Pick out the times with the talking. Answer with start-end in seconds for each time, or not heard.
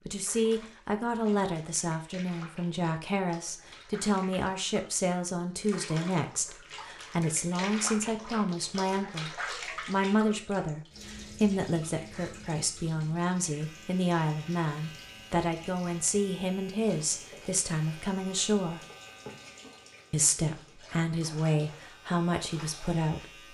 0.1-18.8, 20.1-23.2.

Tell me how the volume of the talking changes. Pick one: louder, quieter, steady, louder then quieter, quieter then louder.
steady.